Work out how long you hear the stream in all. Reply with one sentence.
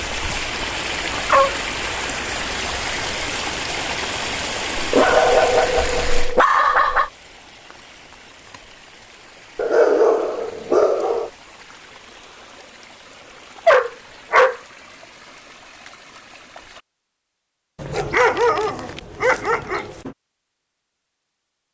You can hear the stream for 17 seconds altogether.